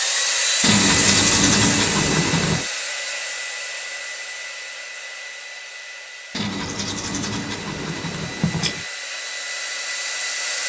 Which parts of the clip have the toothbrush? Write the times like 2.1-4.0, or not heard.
0.6-2.6, 6.3-8.8.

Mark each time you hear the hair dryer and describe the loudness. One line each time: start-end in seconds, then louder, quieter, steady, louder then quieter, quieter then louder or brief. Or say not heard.
0.0-10.6 quieter then louder.